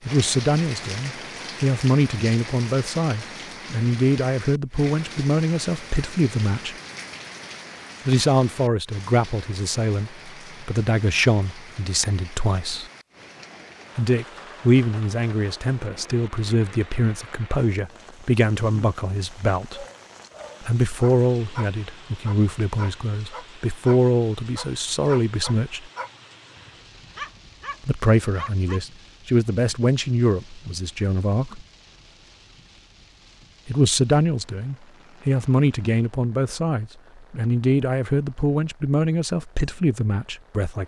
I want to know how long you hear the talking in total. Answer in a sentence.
You can hear the talking for 34 seconds altogether.